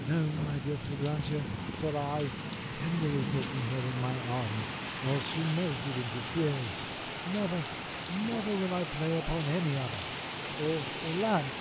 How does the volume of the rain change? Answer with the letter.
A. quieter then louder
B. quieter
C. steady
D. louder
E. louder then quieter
C.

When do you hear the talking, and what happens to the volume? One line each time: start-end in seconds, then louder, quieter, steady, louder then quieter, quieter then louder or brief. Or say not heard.
0.0-11.5 steady.